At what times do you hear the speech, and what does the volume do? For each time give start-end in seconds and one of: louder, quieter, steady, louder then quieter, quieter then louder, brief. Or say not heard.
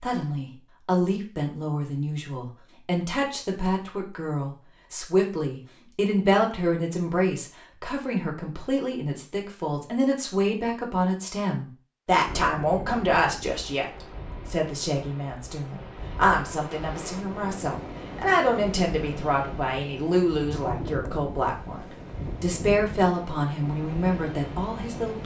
0.0-25.2 steady.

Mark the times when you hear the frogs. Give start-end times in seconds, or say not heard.
not heard.